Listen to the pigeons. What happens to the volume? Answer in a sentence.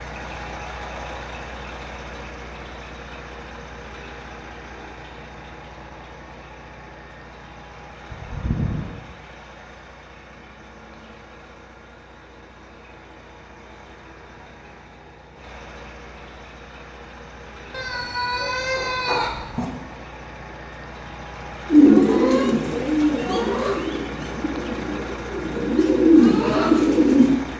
The loudness of the pigeons goes down, then up.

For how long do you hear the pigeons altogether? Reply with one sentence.
The pigeons can be heard for 6 seconds in total.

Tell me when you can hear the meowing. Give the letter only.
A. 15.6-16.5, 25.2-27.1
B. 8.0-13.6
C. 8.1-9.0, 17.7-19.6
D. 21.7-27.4
C.